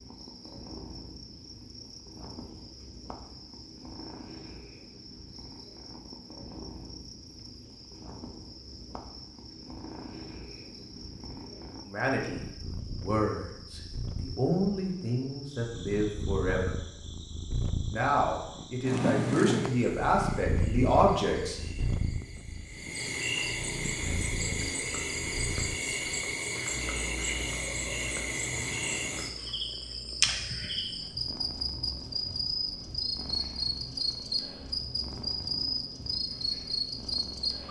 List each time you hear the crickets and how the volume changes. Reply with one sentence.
The crickets can be heard from 0.0 to 37.6 s, getting louder.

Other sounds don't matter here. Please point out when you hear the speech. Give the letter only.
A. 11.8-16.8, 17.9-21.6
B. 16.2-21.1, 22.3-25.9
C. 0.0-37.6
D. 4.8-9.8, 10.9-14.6
A.